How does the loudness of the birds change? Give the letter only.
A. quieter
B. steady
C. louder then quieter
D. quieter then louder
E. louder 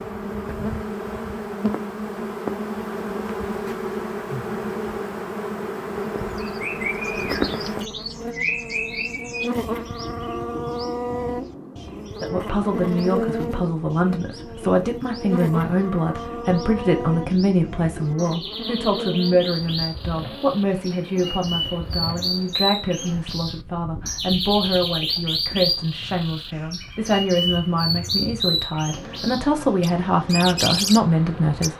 D.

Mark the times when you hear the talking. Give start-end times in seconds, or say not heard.
12.2-31.7.